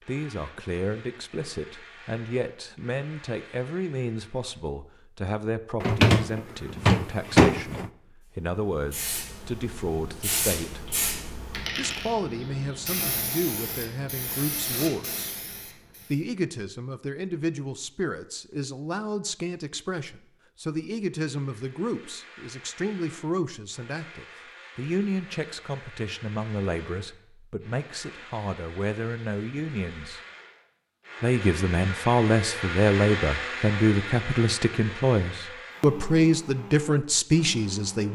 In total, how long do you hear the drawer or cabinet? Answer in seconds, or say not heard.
2 s.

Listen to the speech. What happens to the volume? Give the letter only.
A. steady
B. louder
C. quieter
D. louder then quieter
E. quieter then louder
B.